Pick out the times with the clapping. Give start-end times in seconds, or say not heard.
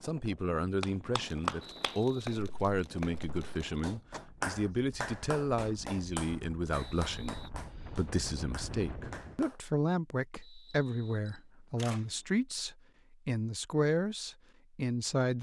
0.8-9.6.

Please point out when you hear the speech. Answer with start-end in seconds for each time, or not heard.
0.0-15.3.